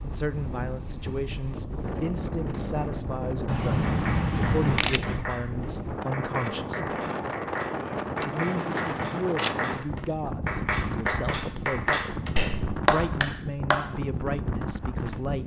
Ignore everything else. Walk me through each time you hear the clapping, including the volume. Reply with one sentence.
You can hear the clapping from 3.9 to 13.8 s, getting louder.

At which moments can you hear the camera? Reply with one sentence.
The camera can be heard from 3.5 to 5.2 s and from 8.2 to 9.6 s.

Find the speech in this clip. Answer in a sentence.
The speech can be heard from 0.0 to 7.0 s, from 8.2 to 12.2 s and from 12.8 to 15.4 s.